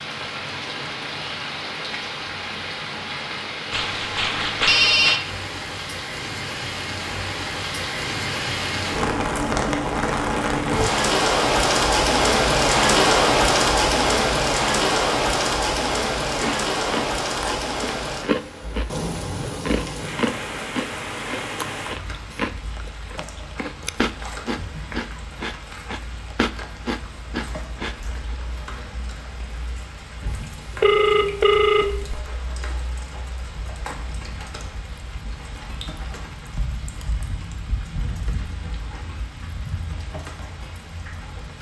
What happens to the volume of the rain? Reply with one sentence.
The loudness of the rain goes up, then down.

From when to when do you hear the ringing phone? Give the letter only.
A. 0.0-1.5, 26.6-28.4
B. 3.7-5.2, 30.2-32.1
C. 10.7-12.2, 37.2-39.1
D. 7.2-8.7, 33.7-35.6
B.